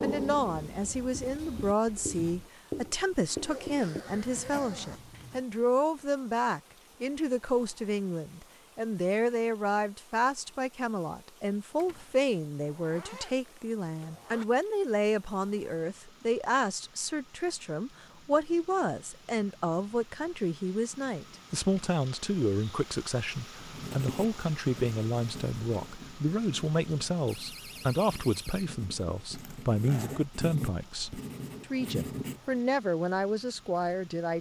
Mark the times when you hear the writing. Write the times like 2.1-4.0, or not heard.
0.0-5.5, 23.7-32.6.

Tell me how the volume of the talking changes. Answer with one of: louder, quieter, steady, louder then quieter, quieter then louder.
steady.